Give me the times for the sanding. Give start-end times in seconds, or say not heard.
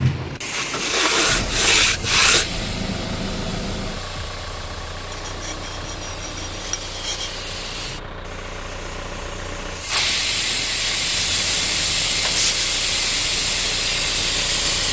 0.5-2.5, 5.1-7.4, 10.9-12.7.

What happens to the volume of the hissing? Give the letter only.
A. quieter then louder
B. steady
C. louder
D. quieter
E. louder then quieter
A.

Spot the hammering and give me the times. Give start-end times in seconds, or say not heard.
not heard.